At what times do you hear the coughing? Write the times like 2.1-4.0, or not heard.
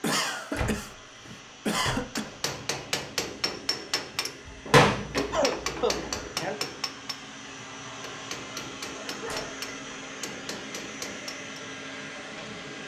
0.0-2.2, 4.7-6.5, 8.9-9.7.